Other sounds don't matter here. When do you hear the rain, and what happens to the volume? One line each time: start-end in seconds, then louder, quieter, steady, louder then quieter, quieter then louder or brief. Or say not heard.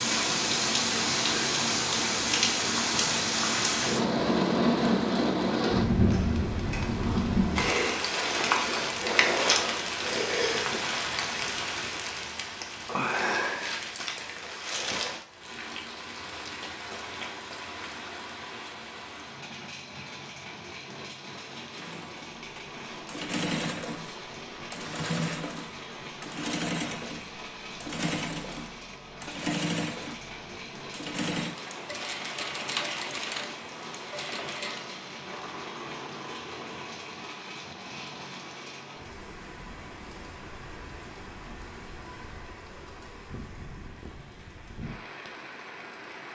0.0-46.2 quieter.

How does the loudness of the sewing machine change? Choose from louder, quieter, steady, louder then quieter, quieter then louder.
quieter.